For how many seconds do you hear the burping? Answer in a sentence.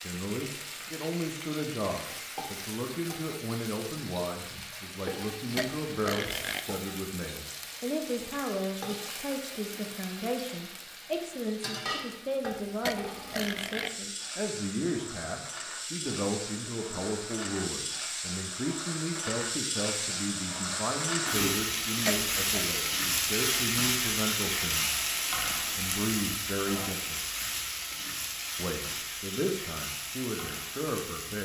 The burping can be heard for 3 seconds in total.